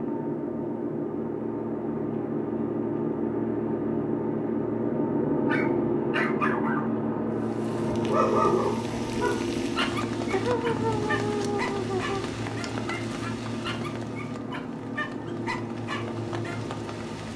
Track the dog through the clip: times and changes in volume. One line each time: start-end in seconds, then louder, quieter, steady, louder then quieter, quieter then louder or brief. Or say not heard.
5.5-7.0 brief
8.1-16.6 quieter.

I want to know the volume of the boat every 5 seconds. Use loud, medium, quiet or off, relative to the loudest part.
loud, loud, medium, medium.